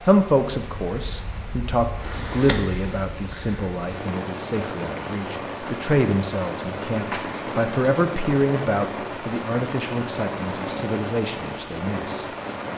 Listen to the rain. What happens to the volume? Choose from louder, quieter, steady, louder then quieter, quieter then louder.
louder.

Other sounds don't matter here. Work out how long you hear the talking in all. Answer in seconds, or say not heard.
12 s.